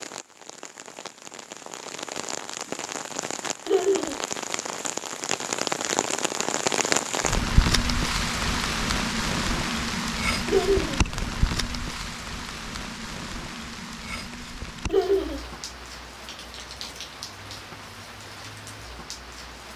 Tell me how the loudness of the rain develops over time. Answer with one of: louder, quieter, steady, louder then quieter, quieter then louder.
louder then quieter.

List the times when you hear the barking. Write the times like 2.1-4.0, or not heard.
not heard.